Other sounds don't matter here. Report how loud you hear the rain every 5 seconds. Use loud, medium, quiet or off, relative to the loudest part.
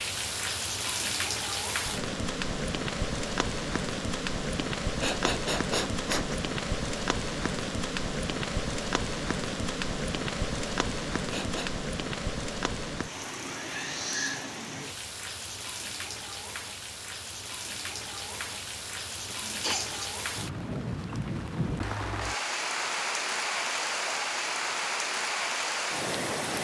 loud, loud, loud, medium, loud, loud.